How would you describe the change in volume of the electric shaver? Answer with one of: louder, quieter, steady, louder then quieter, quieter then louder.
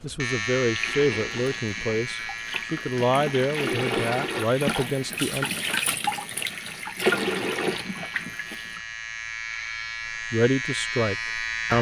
quieter then louder.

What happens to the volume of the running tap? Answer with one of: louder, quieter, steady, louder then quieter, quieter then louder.
louder.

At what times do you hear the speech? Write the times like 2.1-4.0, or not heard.
0.0-5.5, 10.3-11.7.